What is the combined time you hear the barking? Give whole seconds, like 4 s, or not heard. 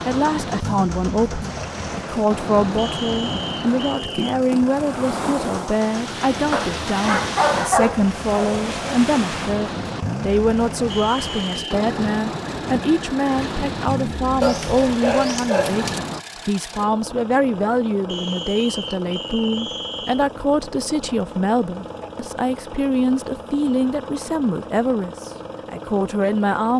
4 s.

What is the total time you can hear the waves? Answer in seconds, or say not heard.
16 s.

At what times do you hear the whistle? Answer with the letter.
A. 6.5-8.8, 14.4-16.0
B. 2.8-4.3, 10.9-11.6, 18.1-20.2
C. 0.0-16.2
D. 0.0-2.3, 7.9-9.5
B.